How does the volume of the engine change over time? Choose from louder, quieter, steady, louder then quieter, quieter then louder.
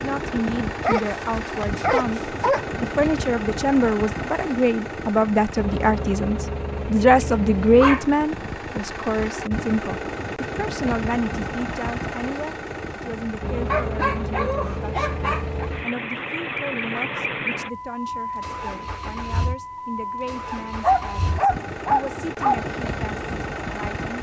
steady.